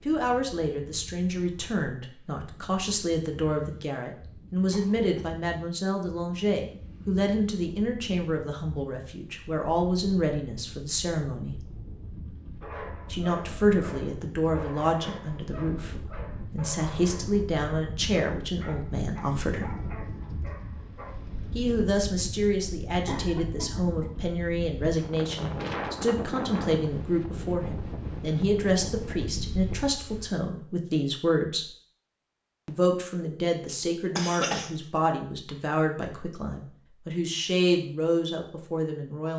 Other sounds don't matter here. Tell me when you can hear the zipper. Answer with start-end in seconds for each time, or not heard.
not heard.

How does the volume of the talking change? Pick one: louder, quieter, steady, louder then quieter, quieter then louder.
steady.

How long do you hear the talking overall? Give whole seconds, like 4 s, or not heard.
35 s.